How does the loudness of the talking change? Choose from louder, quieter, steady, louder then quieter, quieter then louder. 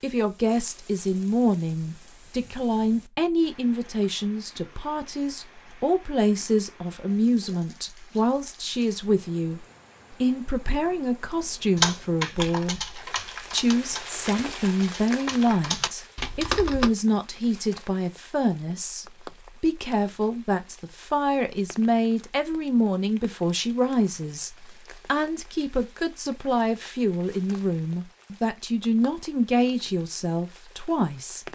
steady.